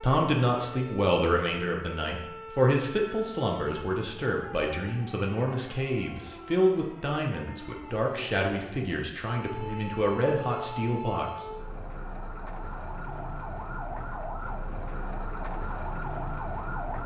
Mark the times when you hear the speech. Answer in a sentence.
The speech can be heard from 0.0 to 11.4 s.